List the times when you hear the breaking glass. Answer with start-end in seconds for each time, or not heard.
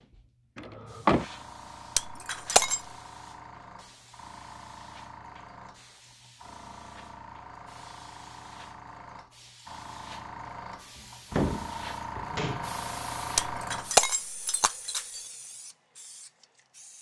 1.9-2.8, 13.3-15.2.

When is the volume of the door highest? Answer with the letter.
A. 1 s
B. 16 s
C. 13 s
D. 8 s
A.